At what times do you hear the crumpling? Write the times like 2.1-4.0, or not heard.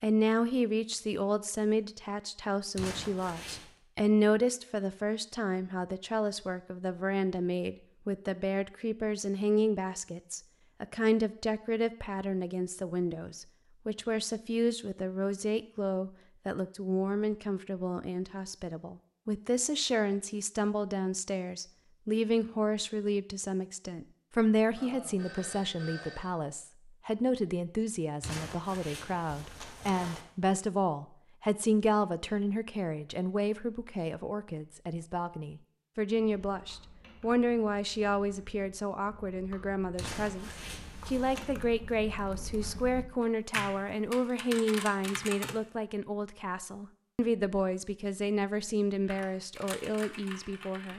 2.8-3.7, 28.2-30.2, 40.0-41.5.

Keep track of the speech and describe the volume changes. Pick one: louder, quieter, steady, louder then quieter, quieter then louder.
steady.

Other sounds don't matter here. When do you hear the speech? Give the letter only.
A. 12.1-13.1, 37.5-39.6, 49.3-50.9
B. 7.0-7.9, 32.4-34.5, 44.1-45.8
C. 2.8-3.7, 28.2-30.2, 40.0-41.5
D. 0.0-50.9
D.